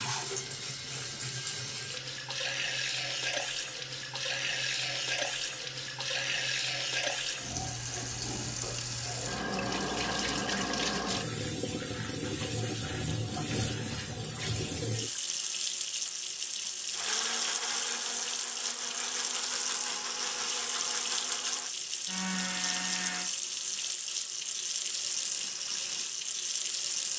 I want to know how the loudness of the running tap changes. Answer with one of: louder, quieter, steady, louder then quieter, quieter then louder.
steady.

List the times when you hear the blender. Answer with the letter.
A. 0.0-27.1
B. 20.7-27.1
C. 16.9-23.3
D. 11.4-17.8
C.